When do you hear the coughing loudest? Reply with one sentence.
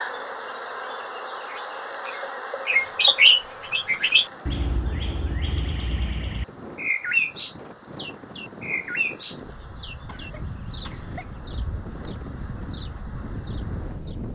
The volume of the coughing peaks at 11 seconds.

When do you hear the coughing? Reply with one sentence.
The coughing can be heard from 9.5 to 11.4 s.